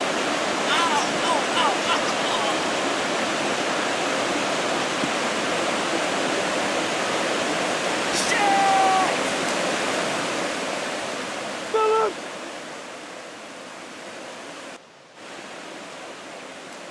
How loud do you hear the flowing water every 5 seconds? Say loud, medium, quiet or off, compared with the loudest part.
loud, loud, medium, quiet.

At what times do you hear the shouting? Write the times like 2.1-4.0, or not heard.
0.7-2.6, 8.1-9.2, 11.7-12.2.